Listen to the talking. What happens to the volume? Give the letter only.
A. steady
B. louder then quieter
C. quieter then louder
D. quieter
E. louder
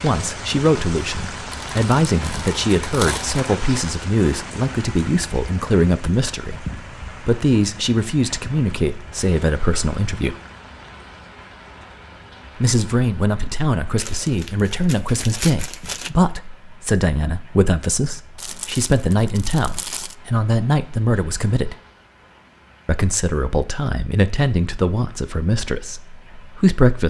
A.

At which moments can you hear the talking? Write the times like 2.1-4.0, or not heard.
0.0-10.3, 12.6-21.8, 22.9-27.0.